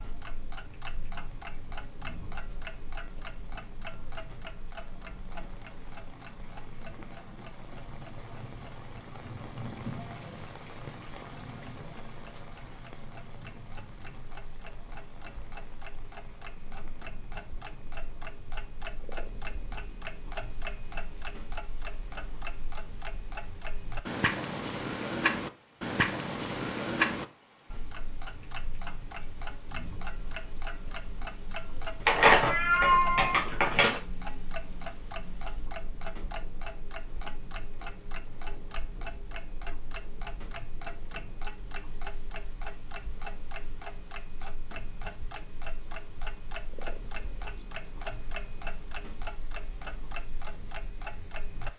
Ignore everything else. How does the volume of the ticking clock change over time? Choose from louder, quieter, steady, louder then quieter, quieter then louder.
louder then quieter.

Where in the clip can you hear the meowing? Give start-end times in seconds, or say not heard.
32.0-34.0.